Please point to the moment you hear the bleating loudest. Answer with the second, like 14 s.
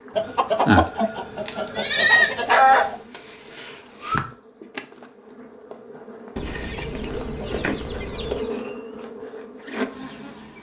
2 s.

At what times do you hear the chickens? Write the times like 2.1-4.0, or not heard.
0.1-3.0, 6.3-8.5.